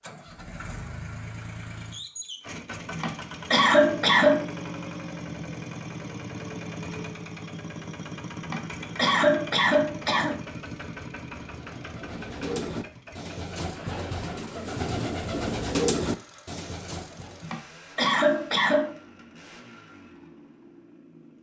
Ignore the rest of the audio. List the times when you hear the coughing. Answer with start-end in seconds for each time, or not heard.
3.0-4.5, 8.4-10.3, 17.4-18.9.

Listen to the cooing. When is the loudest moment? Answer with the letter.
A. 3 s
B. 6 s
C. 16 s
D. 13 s
C.